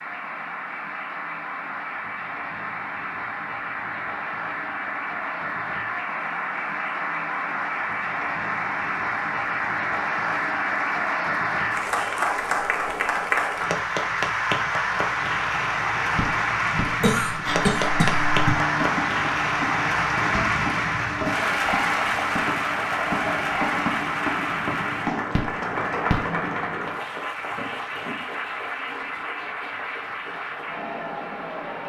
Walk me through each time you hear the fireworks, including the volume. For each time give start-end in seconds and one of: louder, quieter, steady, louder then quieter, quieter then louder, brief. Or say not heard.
16.1-26.1 steady.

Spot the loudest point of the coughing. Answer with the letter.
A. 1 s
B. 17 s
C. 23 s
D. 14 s
B.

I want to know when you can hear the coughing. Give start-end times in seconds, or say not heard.
17.0-18.6.